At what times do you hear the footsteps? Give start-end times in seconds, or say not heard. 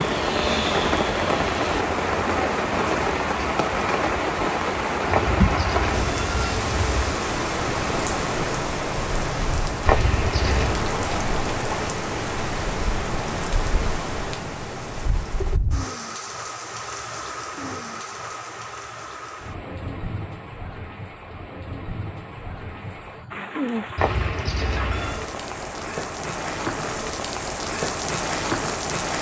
not heard.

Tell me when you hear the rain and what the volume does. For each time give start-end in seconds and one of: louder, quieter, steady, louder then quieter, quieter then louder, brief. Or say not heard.
0.0-29.1 quieter then louder.